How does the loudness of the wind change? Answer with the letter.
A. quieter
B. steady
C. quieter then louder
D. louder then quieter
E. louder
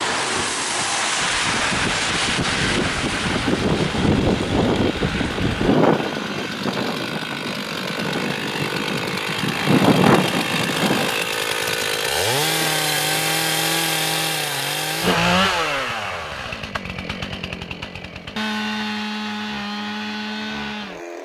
C.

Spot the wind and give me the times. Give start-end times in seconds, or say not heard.
0.0-11.3.